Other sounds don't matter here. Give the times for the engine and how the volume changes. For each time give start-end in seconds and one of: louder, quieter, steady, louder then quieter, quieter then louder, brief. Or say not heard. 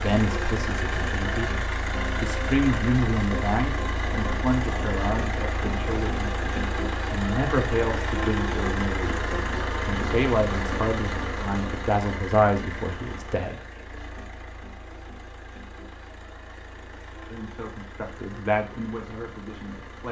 0.0-20.0 quieter.